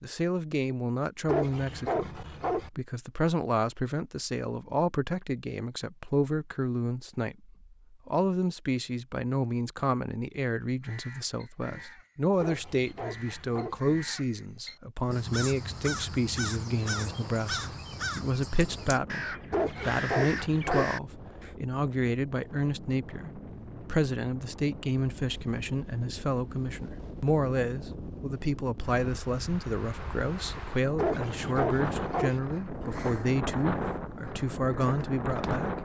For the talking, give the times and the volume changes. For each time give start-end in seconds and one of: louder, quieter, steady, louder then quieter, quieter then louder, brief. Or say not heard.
0.0-35.7 steady.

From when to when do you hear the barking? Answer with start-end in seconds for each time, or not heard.
1.2-2.7, 12.4-13.8, 19.5-20.9, 30.9-32.4.